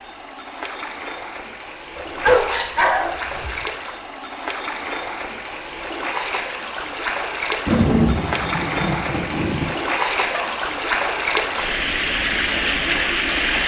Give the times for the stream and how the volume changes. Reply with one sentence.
The stream can be heard from 0.0 to 13.6 s, getting louder.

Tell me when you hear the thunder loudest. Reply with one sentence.
The volume of the thunder peaks at 8 seconds.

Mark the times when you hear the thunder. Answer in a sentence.
You can hear the thunder from 7.7 to 9.7 s.